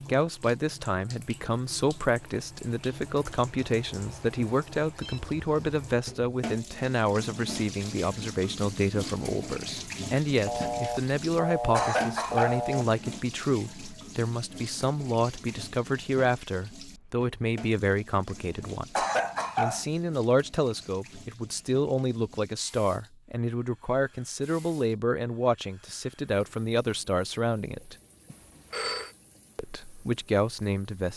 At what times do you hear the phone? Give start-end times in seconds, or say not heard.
5.0-6.0, 10.4-12.8, 28.3-29.1.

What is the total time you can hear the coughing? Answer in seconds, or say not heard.
2 s.